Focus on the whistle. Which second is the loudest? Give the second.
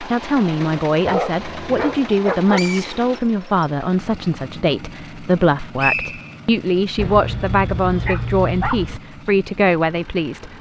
6 s.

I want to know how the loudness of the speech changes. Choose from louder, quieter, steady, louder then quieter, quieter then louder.
steady.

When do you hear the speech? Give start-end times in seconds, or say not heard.
0.0-10.5.